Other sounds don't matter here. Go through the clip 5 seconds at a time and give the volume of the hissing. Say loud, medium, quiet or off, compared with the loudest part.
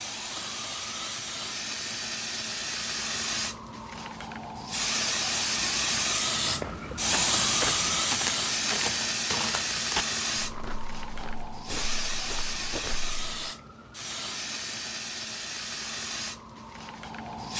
medium, loud, medium, medium.